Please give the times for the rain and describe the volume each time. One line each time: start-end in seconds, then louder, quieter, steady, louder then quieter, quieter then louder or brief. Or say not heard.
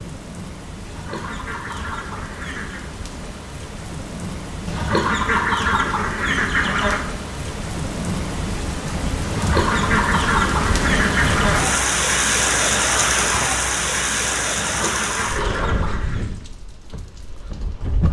0.0-18.0 louder then quieter.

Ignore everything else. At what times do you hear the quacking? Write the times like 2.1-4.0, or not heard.
0.8-2.9, 4.7-7.0, 9.2-11.8, 14.6-16.2.